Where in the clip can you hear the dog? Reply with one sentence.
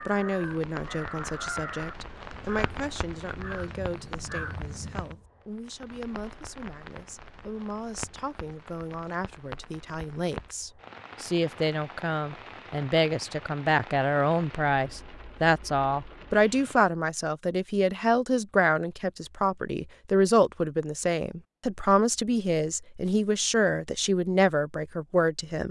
The dog can't be heard in this clip.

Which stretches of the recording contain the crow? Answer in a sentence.
The crow can be heard from 0.0 to 5.2 s.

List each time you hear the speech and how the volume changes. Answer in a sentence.
The speech can be heard from 0.1 to 25.6 s, getting louder.